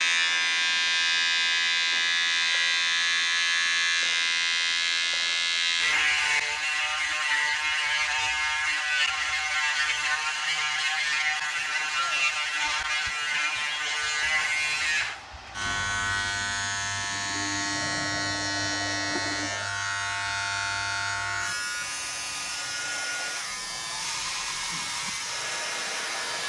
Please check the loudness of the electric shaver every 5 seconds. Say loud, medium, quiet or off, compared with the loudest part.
loud, loud, loud, medium, medium, medium.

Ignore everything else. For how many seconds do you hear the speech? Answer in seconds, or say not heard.
not heard.